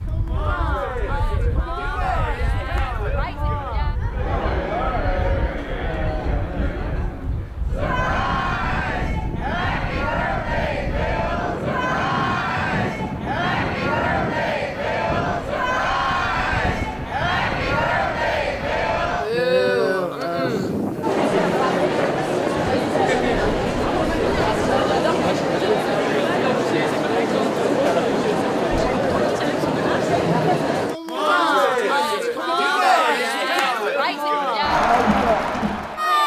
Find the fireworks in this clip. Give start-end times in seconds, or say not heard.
not heard.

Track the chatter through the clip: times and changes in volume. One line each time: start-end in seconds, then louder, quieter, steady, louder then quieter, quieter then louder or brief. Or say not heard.
0.1-36.2 louder.